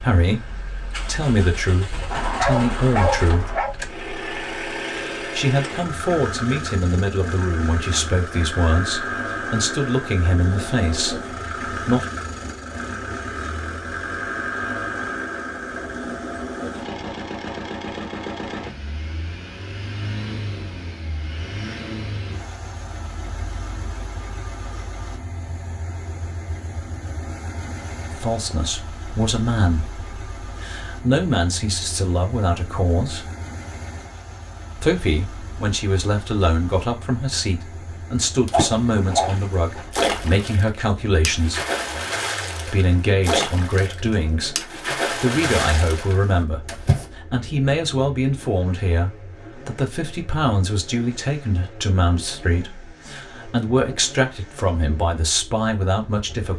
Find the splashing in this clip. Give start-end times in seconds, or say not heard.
38.5-47.0.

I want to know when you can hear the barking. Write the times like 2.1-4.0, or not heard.
2.1-3.8, 38.5-39.9.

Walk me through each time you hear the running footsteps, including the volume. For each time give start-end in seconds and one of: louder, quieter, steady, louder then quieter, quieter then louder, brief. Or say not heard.
not heard.